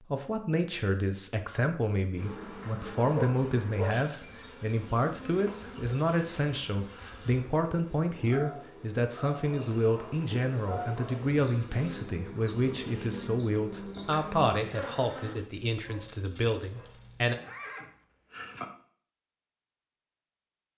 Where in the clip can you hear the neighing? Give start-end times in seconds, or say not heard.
17.4-18.6.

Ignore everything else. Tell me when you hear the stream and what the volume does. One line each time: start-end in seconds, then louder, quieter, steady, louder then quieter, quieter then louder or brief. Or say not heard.
not heard.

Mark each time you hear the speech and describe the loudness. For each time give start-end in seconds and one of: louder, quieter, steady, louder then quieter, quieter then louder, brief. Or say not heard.
0.0-17.4 steady.